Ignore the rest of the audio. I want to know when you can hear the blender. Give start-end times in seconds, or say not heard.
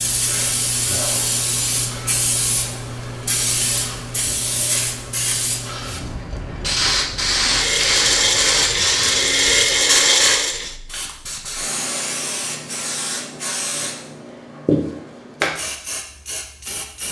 7.4-10.8.